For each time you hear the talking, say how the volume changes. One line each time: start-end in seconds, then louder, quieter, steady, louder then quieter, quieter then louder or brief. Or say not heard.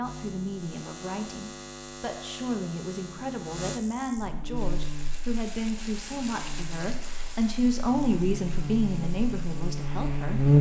0.0-10.5 louder.